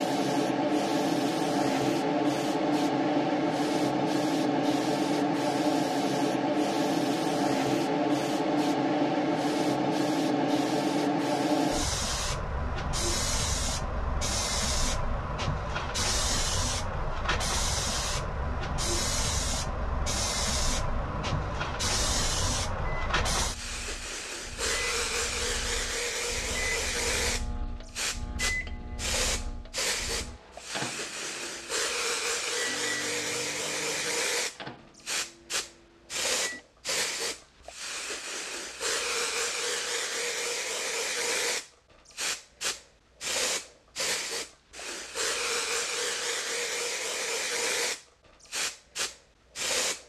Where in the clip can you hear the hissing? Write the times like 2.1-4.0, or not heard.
0.0-50.0.